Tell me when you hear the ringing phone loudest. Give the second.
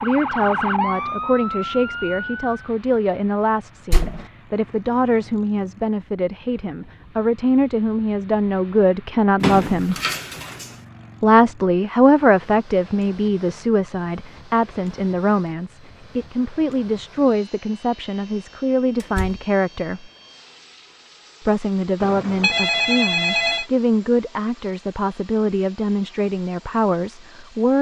23 s.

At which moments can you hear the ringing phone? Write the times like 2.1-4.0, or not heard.
22.0-23.6.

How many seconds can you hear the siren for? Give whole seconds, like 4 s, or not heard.
3 s.